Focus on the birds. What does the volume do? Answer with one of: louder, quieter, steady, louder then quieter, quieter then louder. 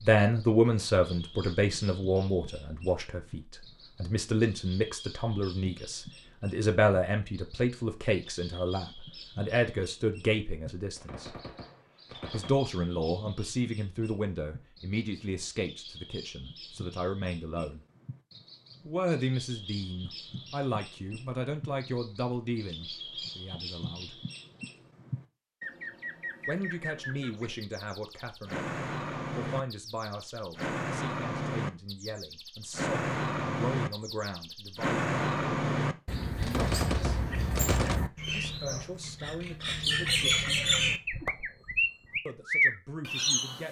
louder.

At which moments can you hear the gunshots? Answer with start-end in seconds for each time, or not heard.
10.9-12.5, 36.4-38.0.